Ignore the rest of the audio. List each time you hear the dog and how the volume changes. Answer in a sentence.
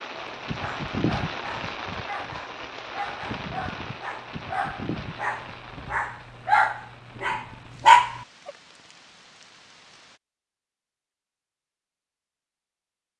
The dog can be heard from 0.1 to 8.5 s, getting louder.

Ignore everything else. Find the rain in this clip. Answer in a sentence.
You can hear the rain from 0.0 to 10.2 s.